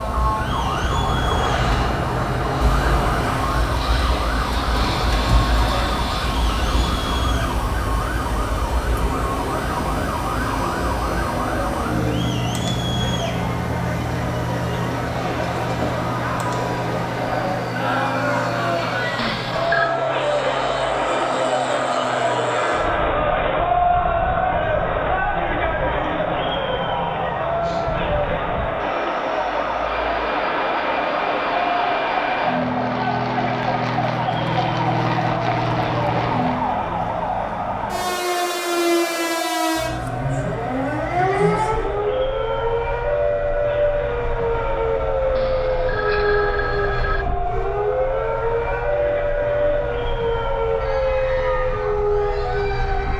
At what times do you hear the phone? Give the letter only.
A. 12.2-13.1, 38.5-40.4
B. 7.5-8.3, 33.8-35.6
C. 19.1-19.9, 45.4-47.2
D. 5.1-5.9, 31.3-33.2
C.